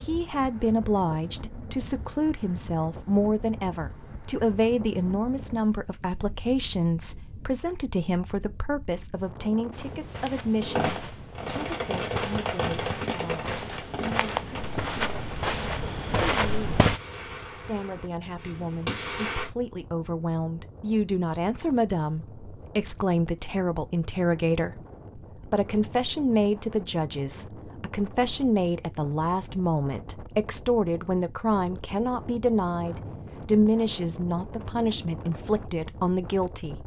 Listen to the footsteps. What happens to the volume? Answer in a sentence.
The volume of the footsteps goes up.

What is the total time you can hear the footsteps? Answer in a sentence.
You can hear the footsteps for 7 seconds altogether.